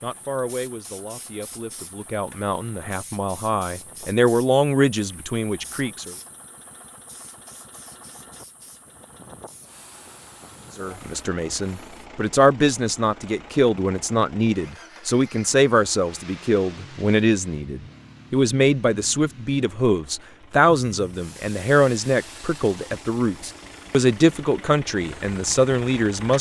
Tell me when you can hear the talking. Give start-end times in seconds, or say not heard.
0.0-6.2, 10.8-26.3.